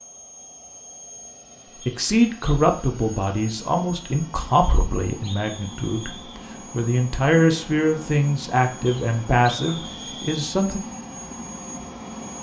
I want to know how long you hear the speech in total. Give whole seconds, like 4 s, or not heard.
9 s.